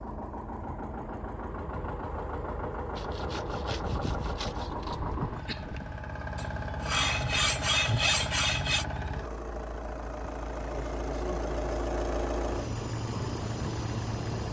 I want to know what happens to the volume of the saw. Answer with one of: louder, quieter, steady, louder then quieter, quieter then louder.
louder.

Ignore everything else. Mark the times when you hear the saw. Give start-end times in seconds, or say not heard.
3.0-8.8.